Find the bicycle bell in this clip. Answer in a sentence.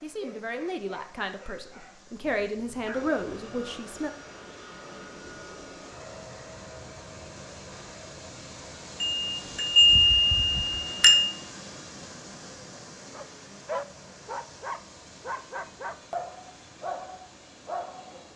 You can hear the bicycle bell from 9.0 to 11.3 s.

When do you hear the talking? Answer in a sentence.
The talking can be heard from 0.0 to 4.1 s.